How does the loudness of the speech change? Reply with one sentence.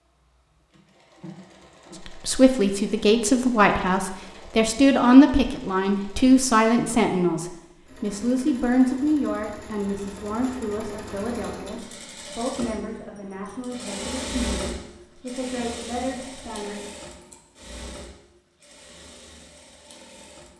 The loudness of the speech goes down.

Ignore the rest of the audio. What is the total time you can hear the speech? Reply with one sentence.
The speech can be heard for 15 seconds in total.